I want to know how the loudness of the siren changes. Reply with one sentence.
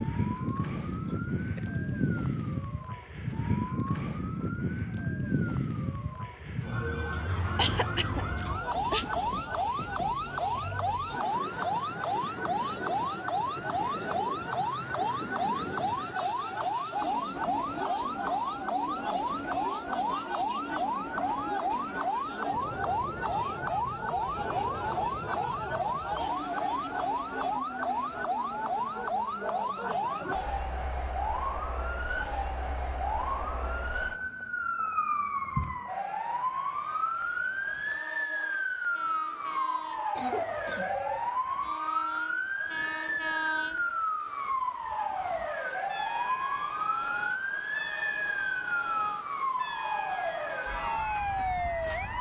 The loudness of the siren stays about the same.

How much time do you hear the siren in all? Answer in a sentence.
You can hear the siren for 52 seconds altogether.